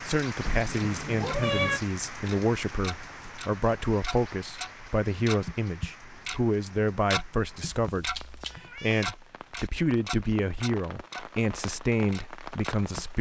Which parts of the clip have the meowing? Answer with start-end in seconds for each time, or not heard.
0.4-1.8, 7.7-9.7.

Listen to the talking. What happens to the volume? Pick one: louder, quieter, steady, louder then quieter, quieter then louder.
steady.